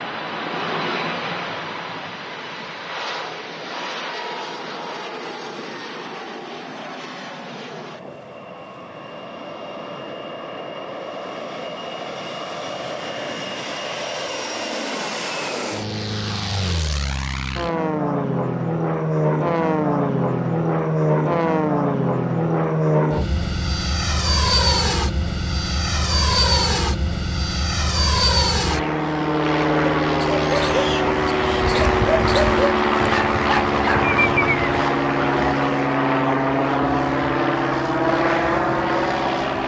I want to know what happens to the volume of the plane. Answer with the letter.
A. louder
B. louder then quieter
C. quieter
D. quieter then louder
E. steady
A.